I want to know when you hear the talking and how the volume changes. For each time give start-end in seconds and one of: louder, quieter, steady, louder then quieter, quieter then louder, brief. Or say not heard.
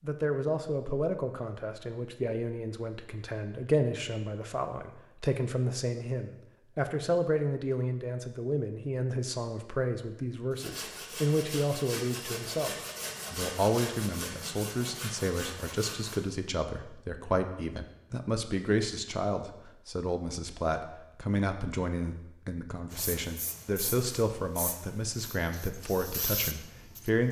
0.0-12.7 steady
13.3-27.2 steady.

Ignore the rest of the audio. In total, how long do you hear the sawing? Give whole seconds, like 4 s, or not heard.
6 s.